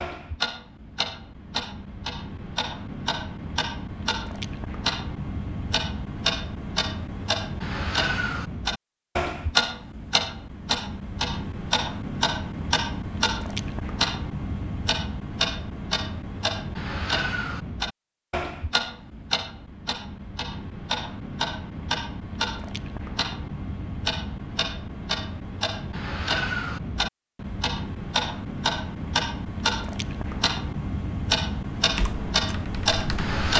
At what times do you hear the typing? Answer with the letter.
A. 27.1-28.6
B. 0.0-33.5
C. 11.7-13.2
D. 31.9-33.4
D.